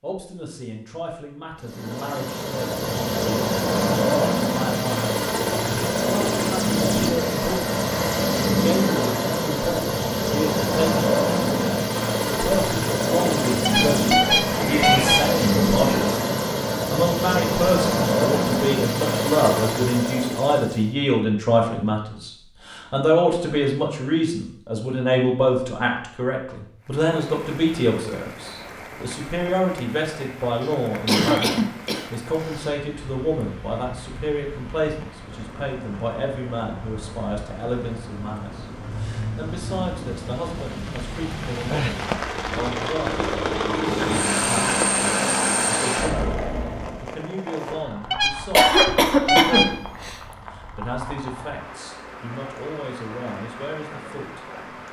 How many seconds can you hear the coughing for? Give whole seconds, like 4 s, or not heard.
4 s.